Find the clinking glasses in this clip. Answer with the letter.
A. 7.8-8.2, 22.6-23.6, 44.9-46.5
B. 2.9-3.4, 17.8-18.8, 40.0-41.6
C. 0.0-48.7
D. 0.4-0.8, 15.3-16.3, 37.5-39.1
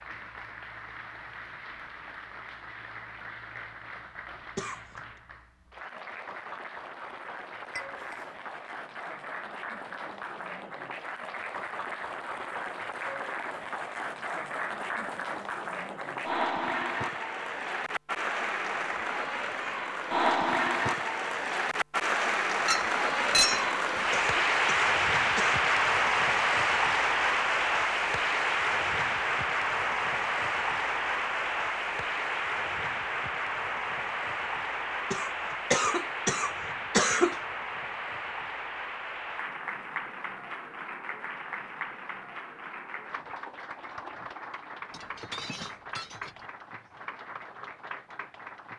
A.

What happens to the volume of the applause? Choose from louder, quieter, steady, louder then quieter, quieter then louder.
louder then quieter.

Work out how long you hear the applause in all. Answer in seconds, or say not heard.
49 s.